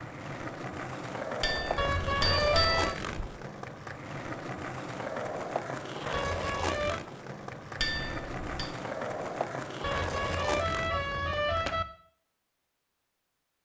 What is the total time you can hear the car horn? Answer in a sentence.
You can hear the car horn for 4 seconds altogether.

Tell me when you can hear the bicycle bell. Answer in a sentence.
You can hear the bicycle bell from 1.4 to 3.2 s and from 7.8 to 8.7 s.